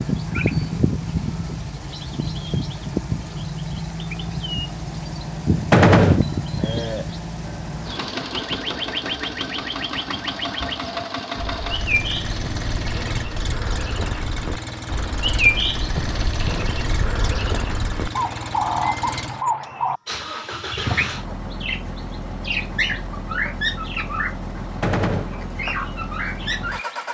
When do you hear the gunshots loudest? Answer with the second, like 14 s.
6 s.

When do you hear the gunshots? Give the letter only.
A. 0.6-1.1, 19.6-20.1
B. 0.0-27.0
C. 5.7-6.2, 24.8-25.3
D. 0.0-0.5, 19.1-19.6
C.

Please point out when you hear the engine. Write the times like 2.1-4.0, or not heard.
0.0-27.0.